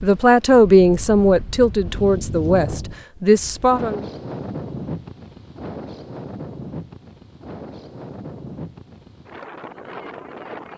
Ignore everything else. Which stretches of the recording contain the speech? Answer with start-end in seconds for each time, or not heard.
0.0-4.0.